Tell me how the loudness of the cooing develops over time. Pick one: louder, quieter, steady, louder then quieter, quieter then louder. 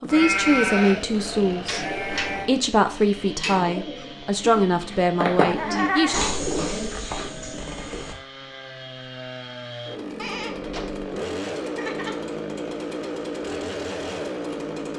louder then quieter.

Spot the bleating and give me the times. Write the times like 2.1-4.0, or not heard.
0.1-2.5, 5.3-7.2, 10.2-12.2.